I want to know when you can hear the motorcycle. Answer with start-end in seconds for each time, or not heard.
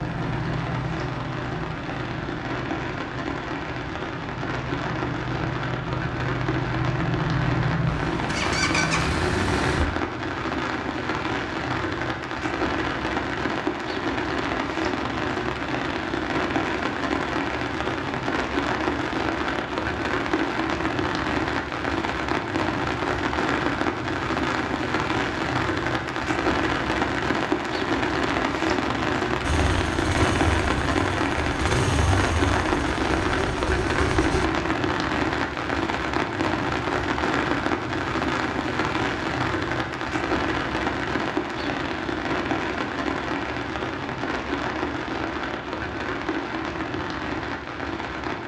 0.0-9.9, 29.4-34.5.